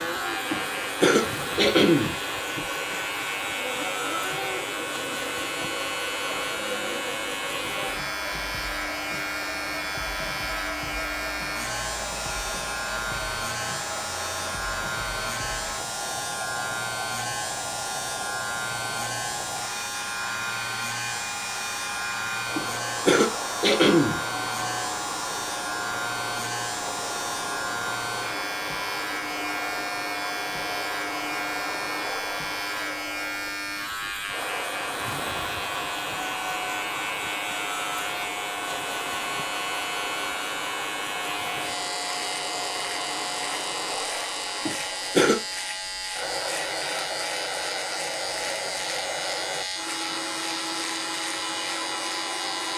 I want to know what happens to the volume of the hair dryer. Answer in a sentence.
The volume of the hair dryer stays about the same.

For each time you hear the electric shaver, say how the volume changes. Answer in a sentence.
You can hear the electric shaver from 0.0 to 52.7 s, at a steady volume.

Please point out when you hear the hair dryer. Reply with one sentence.
The hair dryer can be heard from 0.0 to 52.7 s.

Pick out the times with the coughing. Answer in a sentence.
The coughing can be heard from 0.5 to 2.6 s, from 22.6 to 24.2 s and from 44.6 to 45.4 s.